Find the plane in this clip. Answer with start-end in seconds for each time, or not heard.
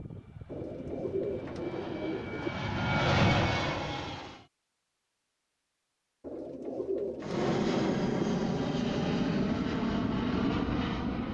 0.0-4.5, 7.2-11.2.